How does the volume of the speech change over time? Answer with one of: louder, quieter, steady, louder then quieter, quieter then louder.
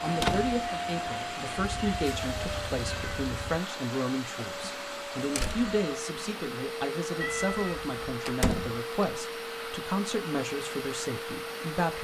steady.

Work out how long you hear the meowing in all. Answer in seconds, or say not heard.
3 s.